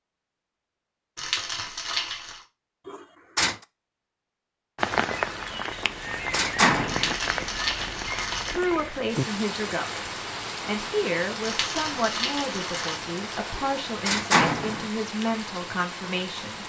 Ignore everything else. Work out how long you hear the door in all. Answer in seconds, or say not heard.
3 s.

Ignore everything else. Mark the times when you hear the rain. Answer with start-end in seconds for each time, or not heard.
4.8-16.6.